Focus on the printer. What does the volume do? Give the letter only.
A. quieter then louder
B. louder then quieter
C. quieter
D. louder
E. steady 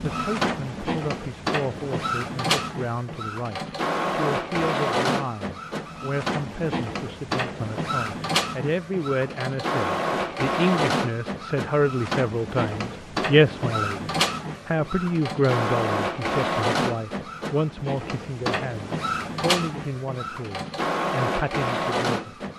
E.